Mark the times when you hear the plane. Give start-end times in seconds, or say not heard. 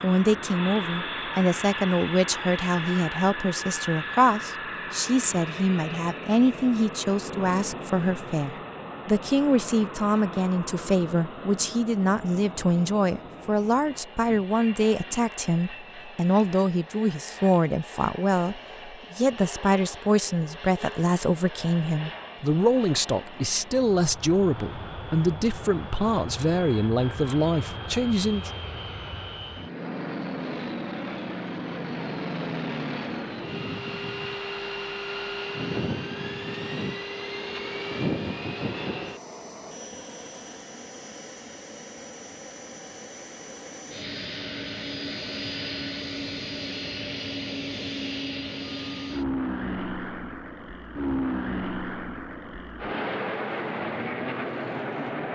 0.0-55.3.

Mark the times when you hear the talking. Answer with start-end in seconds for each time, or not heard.
0.0-28.5.